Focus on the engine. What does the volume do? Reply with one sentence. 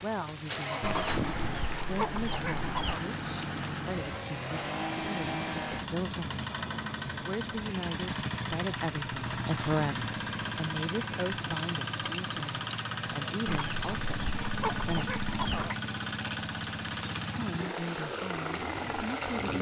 The volume of the engine stays about the same.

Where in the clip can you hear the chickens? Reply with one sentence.
The chickens can be heard from 0.8 to 3.0 s and from 13.4 to 15.8 s.